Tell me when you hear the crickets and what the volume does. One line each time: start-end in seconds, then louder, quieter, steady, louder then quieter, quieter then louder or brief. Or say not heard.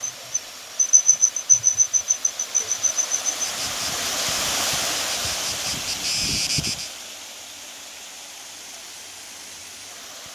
0.0-6.9 quieter then louder.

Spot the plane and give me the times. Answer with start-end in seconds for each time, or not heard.
not heard.